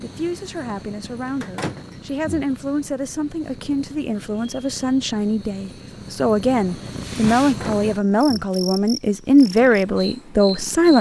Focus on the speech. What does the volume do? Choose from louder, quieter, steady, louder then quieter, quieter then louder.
louder.